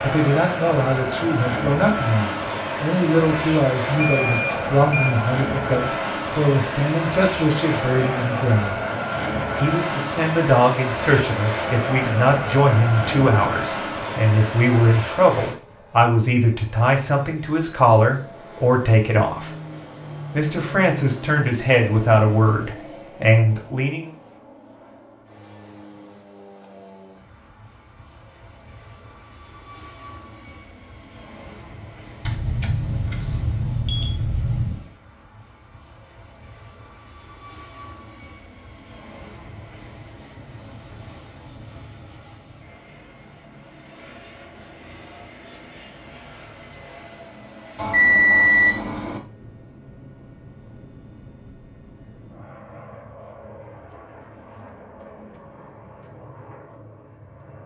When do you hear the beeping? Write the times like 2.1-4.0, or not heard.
4.0-5.1, 32.2-34.9, 47.8-49.2.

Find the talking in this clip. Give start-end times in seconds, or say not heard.
0.0-8.8, 9.6-19.5, 20.3-24.1.